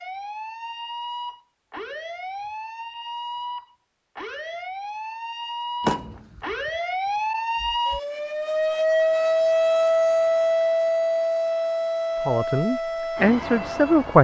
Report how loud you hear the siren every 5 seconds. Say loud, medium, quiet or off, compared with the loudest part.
medium, loud, loud.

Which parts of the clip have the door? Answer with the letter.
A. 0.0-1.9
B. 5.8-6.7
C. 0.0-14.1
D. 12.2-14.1
B.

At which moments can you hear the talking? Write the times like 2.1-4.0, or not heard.
12.2-14.1.